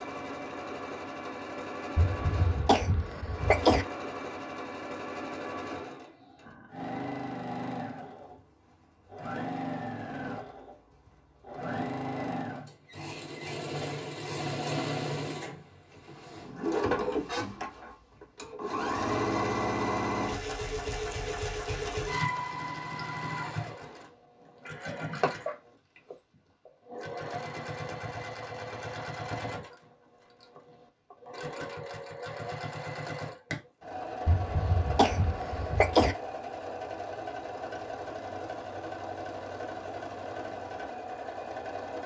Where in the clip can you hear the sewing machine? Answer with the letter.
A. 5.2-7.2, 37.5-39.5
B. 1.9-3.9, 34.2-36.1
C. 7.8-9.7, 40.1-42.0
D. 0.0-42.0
D.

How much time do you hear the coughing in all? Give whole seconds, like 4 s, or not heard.
4 s.